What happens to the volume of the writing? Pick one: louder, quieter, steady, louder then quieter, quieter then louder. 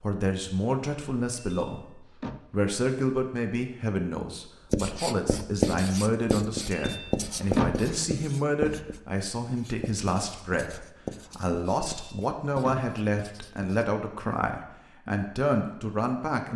quieter.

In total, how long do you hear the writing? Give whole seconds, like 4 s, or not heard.
9 s.